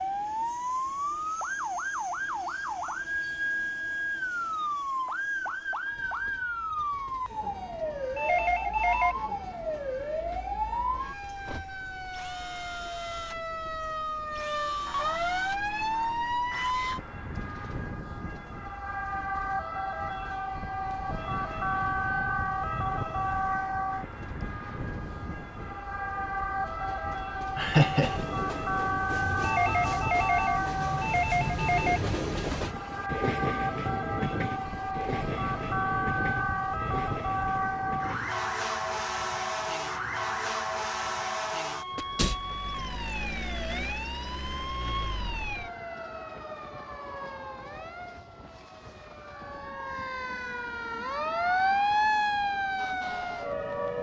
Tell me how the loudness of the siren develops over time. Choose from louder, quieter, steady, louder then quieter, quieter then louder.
steady.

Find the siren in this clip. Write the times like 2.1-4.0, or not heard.
0.0-53.9.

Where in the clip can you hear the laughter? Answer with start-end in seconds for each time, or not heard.
27.6-28.2.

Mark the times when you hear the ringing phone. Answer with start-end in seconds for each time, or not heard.
8.2-9.2, 29.4-32.0.